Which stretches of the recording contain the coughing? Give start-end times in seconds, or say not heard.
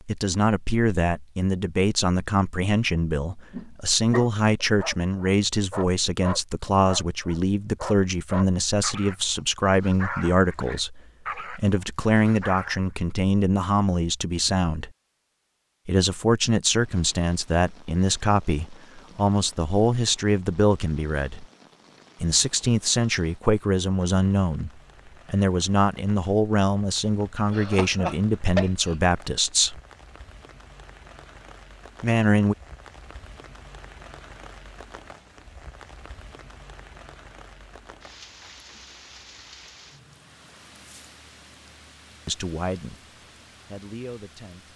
27.5-28.9.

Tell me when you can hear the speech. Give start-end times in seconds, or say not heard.
0.1-14.9, 15.8-21.4, 22.2-29.8, 32.0-32.5, 42.2-43.0, 43.6-44.7.